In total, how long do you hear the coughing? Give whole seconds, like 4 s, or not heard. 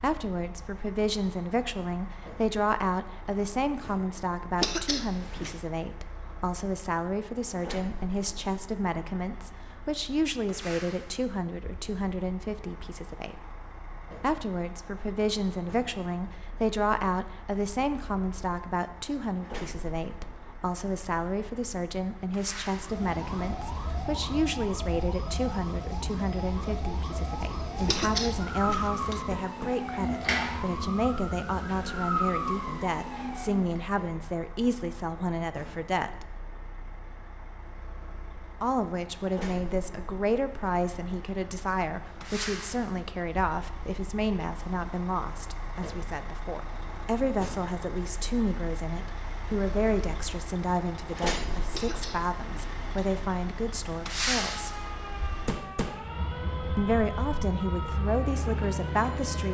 4 s.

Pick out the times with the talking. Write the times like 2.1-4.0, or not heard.
0.0-13.3, 14.2-36.3, 38.6-54.8, 56.8-59.5.